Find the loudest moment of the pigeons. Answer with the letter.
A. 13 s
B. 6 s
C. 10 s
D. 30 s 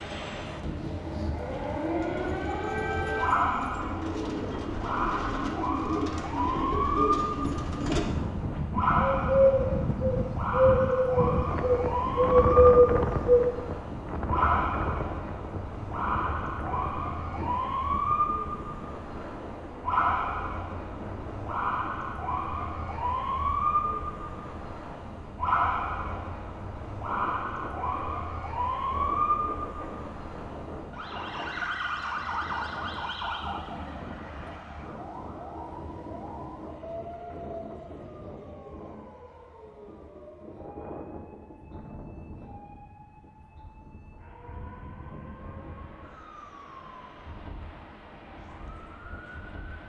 A.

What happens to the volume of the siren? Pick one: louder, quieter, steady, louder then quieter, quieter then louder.
quieter.